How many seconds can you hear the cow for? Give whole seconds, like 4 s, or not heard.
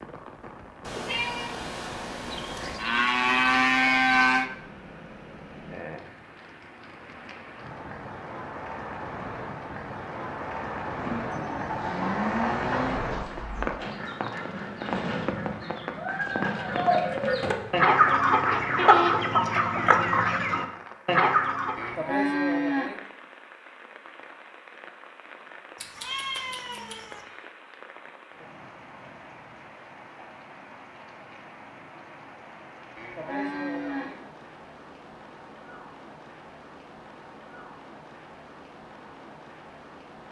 7 s.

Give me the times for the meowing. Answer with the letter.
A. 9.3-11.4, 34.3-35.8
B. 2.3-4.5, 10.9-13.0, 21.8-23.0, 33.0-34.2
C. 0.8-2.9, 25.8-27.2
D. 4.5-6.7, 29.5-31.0
C.